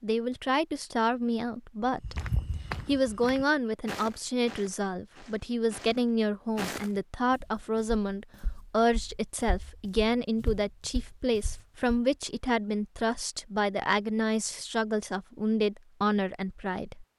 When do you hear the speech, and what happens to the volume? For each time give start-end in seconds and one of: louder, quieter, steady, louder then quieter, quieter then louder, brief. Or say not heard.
0.0-2.1 brief
2.9-17.1 steady.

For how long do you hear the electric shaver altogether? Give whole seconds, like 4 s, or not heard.
not heard.